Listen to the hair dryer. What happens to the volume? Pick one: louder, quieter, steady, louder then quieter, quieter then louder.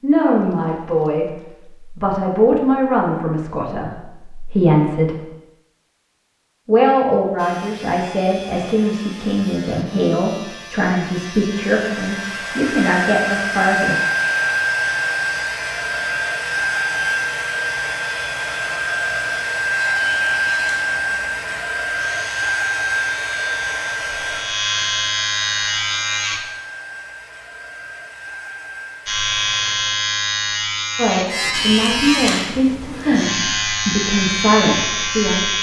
quieter.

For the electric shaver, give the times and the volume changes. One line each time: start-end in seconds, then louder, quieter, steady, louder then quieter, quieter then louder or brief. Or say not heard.
7.3-26.4 louder
29.1-35.5 steady.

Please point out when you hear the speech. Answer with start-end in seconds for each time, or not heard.
0.0-5.2, 6.7-13.9, 30.9-35.4.